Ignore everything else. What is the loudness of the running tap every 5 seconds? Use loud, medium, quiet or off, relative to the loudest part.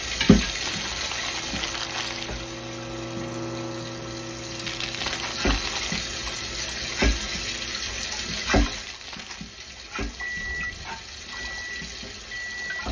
loud, loud, medium.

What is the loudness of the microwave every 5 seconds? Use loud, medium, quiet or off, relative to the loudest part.
loud, medium, loud.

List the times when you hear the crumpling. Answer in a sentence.
You can hear the crumpling from 0.4 to 2.3 s, from 4.7 to 6.0 s and from 8.7 to 9.4 s.